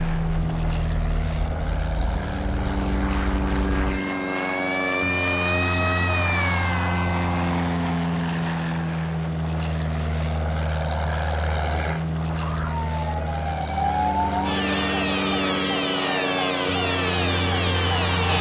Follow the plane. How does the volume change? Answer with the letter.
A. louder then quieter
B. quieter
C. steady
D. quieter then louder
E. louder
C.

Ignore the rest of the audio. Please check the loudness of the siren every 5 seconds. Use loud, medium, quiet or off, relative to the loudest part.
medium, loud, loud, loud.